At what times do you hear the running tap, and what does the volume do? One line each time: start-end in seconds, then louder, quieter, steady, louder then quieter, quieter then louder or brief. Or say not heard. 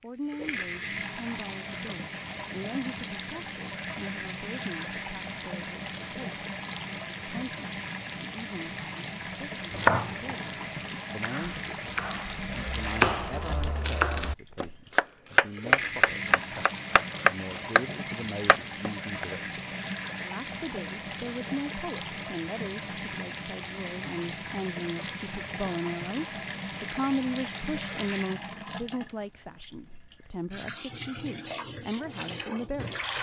0.0-33.1 steady.